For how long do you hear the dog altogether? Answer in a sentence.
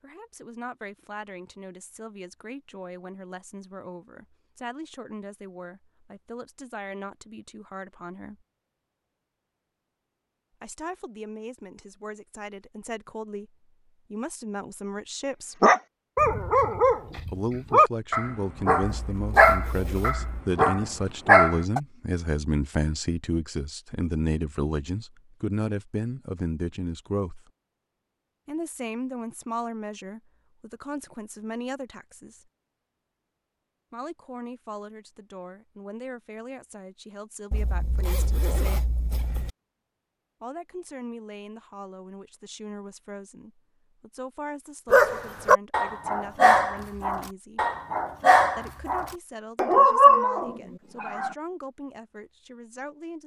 The dog can be heard for 13 seconds in total.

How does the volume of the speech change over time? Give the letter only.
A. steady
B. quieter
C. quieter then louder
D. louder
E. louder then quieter
E.